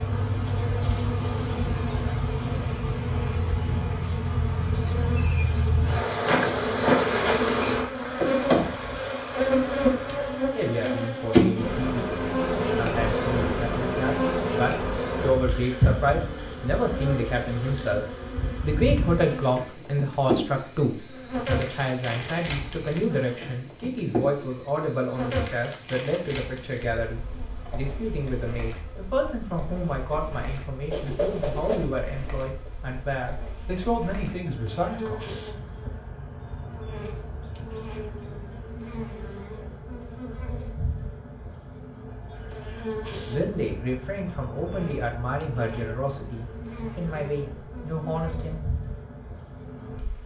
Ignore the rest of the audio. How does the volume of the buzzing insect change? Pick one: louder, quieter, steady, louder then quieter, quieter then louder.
quieter.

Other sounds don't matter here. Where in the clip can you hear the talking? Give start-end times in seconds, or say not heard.
10.5-35.4, 43.2-48.5.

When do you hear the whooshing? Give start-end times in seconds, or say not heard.
30.9-31.9.